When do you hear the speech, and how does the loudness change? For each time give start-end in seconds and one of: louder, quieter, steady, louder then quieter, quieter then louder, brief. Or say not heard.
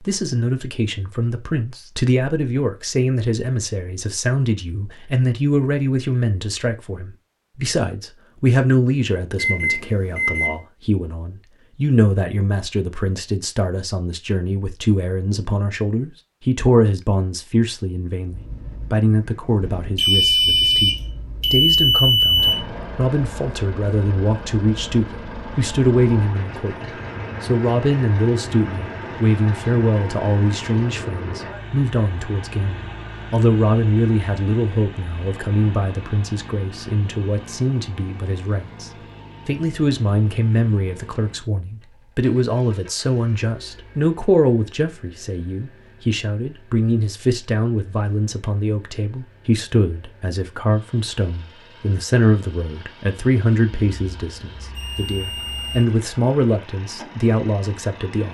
0.0-58.3 steady.